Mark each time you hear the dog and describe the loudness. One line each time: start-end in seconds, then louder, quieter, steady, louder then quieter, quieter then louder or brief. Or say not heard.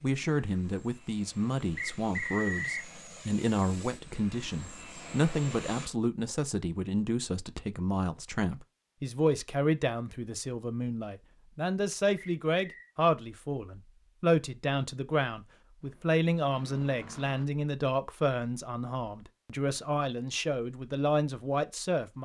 not heard.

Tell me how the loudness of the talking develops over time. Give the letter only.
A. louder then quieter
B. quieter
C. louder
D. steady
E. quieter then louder
D.